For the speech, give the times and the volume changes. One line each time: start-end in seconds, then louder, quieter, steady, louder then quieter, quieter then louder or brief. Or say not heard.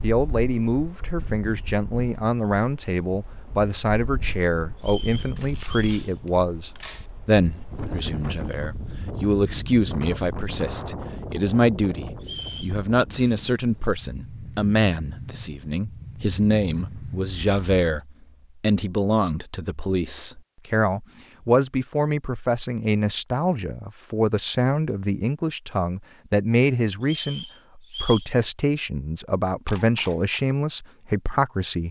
0.0-31.8 steady.